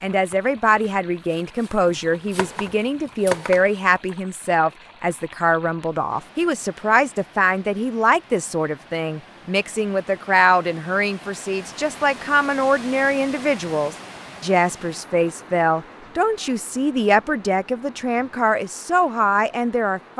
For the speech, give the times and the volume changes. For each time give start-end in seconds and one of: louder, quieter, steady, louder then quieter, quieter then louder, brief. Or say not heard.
0.0-20.1 steady.